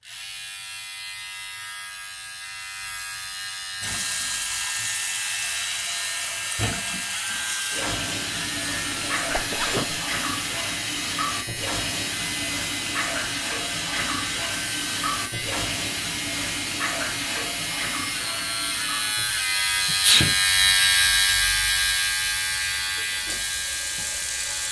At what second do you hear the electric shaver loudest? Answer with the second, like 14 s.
21 s.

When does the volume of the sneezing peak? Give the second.
20 s.